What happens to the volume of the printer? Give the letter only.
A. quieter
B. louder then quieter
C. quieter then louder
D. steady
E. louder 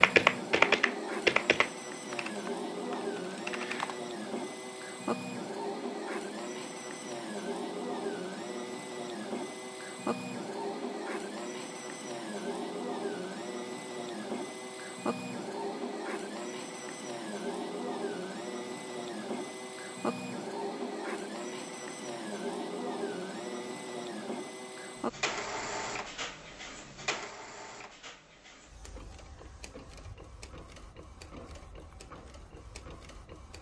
A.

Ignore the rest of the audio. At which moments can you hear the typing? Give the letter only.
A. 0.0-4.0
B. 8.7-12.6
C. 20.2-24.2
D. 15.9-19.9
A.